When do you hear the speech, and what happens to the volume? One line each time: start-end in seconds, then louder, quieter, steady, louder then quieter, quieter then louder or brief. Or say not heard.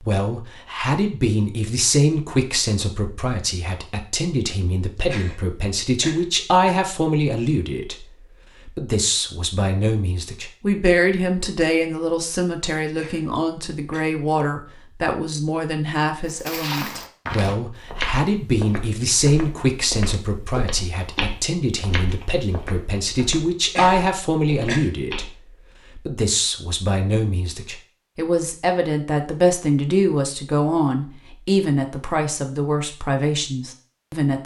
0.0-34.4 steady.